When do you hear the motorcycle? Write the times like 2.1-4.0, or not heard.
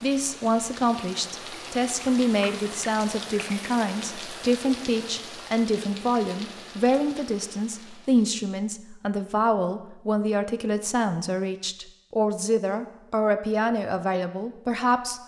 not heard.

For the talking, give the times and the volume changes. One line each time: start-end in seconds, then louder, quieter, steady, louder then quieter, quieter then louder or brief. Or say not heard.
0.0-15.2 steady.